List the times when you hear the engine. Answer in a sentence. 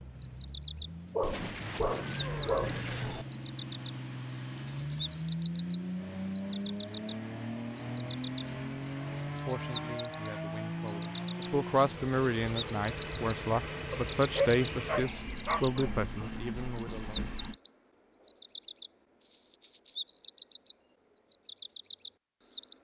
You can hear the engine from 0.0 to 17.6 s.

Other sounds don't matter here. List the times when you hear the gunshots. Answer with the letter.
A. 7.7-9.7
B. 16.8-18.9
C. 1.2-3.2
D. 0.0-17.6
C.